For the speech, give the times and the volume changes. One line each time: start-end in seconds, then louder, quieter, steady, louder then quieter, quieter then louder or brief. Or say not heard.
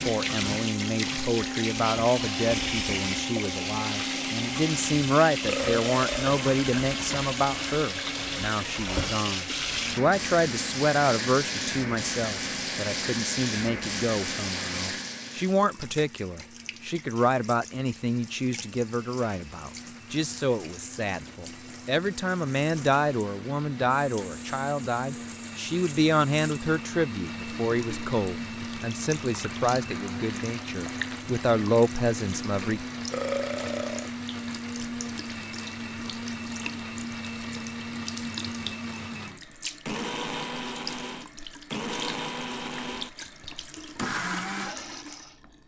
0.0-32.8 steady.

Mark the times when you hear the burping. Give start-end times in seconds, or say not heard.
5.5-6.3, 33.1-34.1.